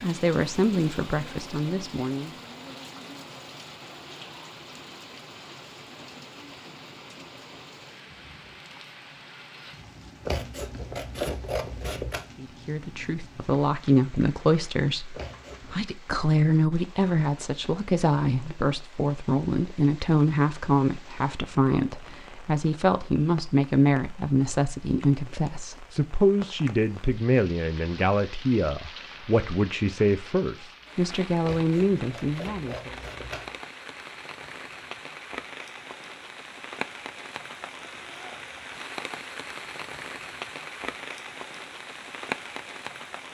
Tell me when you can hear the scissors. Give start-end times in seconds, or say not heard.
10.2-12.2, 15.1-15.8, 31.4-33.6.